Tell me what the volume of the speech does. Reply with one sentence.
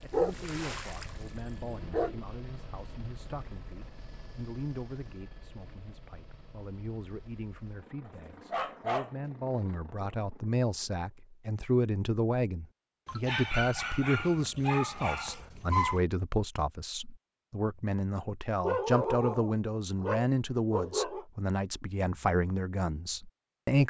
The loudness of the speech goes up.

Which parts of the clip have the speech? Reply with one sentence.
The speech can be heard from 0.0 to 23.8 s.